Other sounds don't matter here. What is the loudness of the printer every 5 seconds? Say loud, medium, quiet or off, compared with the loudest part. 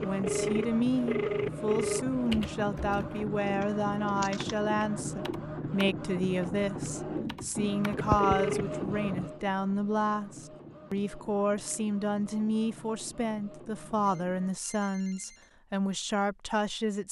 loud, loud, quiet, off.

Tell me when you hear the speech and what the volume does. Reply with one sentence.
The speech can be heard from 0.0 to 17.0 s, at a steady volume.